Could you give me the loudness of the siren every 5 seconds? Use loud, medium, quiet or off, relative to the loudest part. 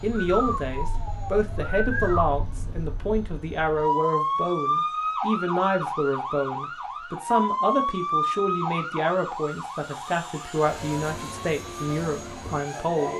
loud, loud, medium.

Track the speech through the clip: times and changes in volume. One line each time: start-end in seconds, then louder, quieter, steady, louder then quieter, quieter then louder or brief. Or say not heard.
0.0-13.1 steady.